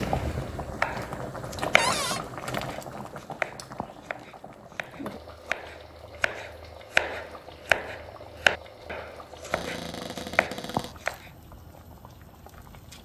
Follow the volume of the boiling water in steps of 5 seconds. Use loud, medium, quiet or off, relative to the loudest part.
loud, medium, quiet.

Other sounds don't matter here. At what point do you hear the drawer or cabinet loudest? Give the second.
2 s.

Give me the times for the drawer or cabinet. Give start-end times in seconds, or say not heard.
1.8-2.2, 9.5-11.1.